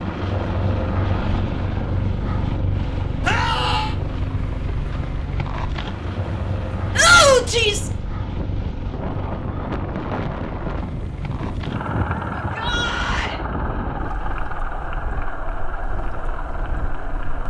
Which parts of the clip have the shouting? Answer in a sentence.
The shouting can be heard from 3.2 to 4.0 s, from 7.0 to 7.9 s and from 12.3 to 13.4 s.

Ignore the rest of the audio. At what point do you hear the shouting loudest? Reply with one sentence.
The loudest moment of the shouting is at 7 seconds.